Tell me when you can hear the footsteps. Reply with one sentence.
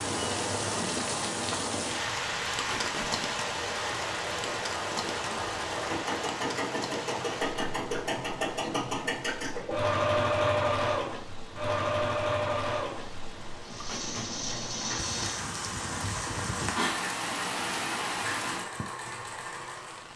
You can't hear the footsteps here.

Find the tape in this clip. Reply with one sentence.
You can hear the tape from 2.5 to 3.1 s, from 7.2 to 7.7 s and from 13.8 to 14.3 s.